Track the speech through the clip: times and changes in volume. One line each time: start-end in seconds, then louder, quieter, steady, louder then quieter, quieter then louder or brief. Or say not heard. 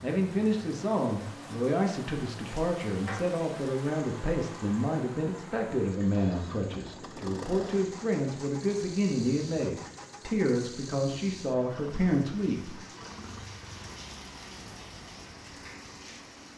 0.0-12.8 steady.